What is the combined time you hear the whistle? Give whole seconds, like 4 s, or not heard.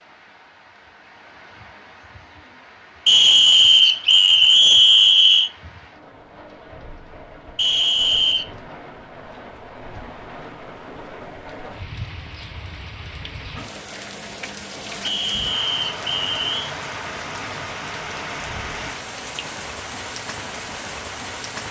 5 s.